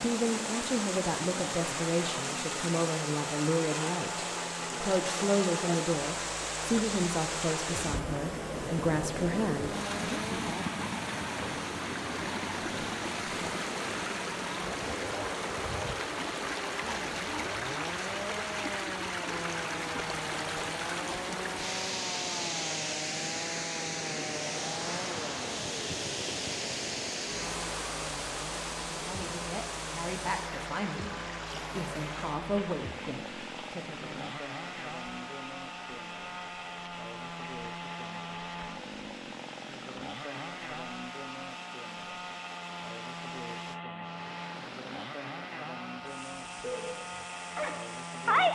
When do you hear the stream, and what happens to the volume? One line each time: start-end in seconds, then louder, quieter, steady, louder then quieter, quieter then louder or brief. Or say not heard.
0.0-48.5 quieter.